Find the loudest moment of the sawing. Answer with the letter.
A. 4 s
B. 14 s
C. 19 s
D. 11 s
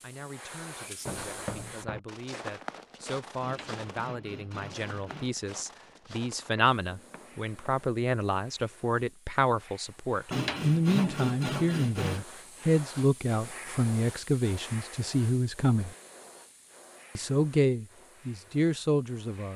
D.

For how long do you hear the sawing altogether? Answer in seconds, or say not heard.
4 s.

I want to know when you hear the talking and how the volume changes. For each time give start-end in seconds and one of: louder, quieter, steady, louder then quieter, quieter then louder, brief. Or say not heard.
0.0-15.9 louder
17.1-19.5 brief.